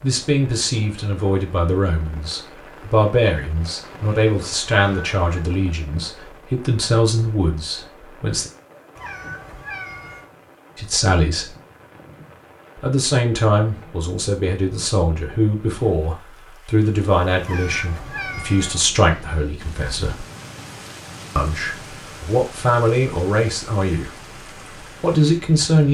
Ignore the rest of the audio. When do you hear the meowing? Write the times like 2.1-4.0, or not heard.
4.8-5.2, 8.9-10.2, 17.4-18.9.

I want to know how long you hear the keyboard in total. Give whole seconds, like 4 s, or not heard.
not heard.